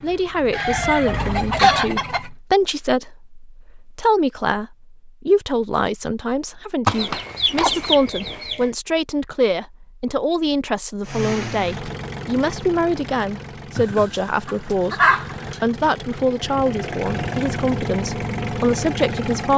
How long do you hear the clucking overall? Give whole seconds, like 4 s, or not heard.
5 s.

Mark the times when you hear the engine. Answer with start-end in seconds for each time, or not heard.
0.0-2.4, 11.0-19.5.